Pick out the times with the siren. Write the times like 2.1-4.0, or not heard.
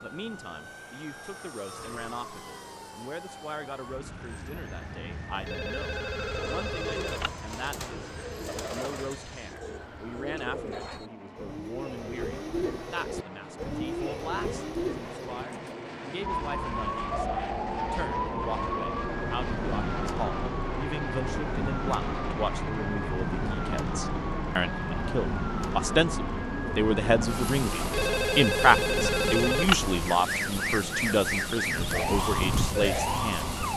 0.0-11.1, 16.2-33.7.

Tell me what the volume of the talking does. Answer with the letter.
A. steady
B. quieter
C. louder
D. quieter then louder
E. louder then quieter
C.